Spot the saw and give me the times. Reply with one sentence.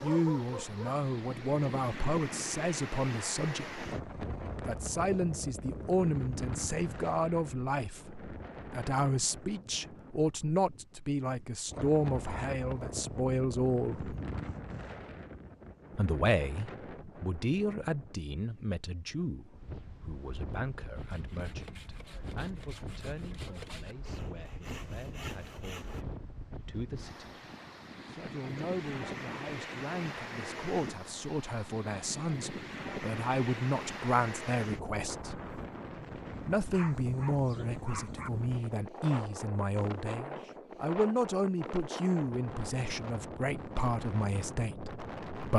You can hear the saw from 20.9 to 26.1 s.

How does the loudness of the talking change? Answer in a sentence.
The loudness of the talking goes down, then up.